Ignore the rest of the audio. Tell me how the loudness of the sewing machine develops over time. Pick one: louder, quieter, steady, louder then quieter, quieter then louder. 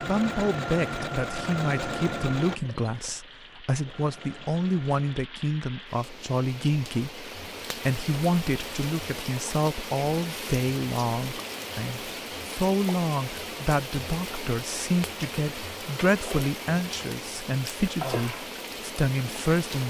quieter then louder.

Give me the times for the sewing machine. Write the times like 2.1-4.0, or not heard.
0.0-5.2.